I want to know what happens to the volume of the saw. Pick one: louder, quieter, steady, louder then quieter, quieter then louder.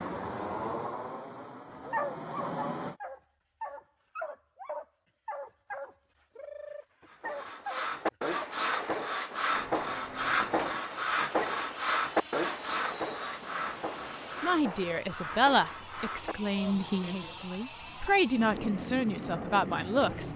quieter.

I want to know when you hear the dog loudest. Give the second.
2 s.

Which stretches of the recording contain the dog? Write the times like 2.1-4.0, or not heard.
1.9-8.4.